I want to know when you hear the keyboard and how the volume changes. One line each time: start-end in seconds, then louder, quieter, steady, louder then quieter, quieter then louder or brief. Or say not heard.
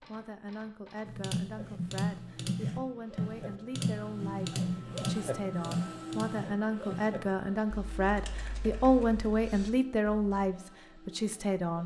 1.1-10.4 quieter.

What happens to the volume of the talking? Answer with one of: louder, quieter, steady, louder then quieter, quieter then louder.
louder.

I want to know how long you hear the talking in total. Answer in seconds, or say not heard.
12 s.